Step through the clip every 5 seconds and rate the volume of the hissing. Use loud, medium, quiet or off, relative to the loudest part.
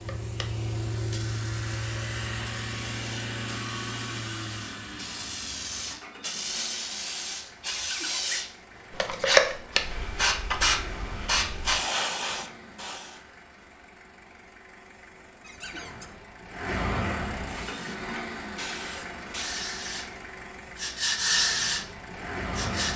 quiet, loud, loud, medium, loud.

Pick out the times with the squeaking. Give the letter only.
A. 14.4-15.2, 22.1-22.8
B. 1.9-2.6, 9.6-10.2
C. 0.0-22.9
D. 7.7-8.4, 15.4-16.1
D.